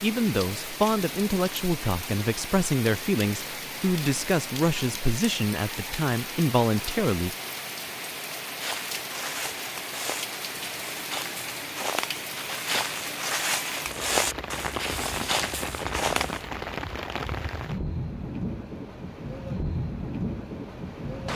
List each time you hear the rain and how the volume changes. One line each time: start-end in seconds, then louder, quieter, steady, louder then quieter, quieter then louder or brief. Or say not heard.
0.0-21.3 steady.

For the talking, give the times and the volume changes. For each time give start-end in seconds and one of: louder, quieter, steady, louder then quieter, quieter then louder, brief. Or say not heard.
0.0-7.3 steady.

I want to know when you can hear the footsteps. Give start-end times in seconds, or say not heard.
8.6-16.4.